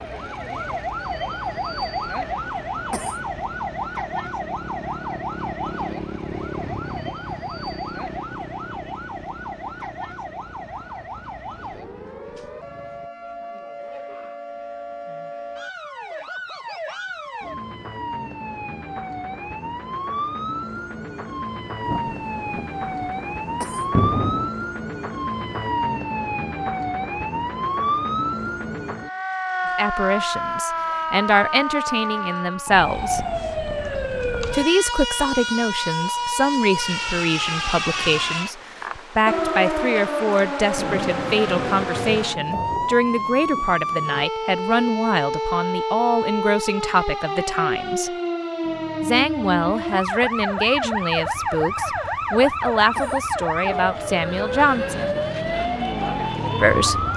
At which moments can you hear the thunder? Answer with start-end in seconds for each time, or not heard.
21.9-24.5, 40.8-44.2.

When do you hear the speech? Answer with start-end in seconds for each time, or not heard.
29.8-33.2, 34.5-48.1, 49.0-55.0, 56.6-57.0.